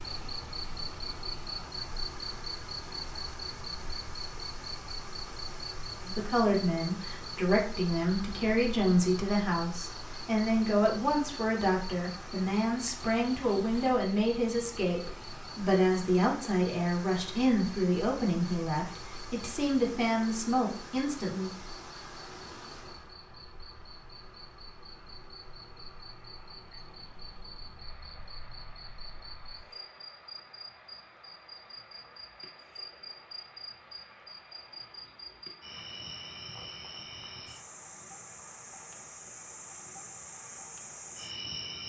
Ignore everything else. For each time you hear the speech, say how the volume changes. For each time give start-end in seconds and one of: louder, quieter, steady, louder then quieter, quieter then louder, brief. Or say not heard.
6.0-21.5 steady.